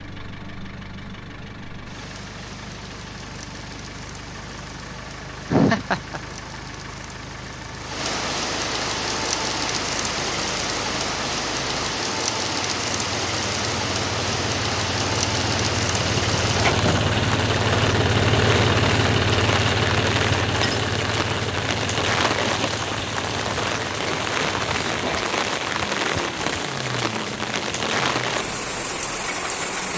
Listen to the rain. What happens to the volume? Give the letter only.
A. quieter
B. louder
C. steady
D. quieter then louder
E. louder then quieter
B.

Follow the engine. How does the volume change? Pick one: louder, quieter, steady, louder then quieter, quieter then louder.
louder then quieter.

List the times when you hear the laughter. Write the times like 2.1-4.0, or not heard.
5.5-6.2.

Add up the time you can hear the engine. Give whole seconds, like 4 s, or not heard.
30 s.